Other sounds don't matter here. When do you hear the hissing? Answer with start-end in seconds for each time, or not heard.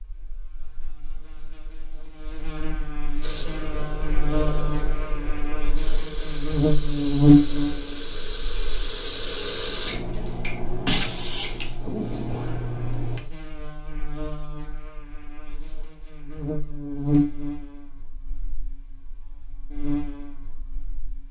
3.2-13.2.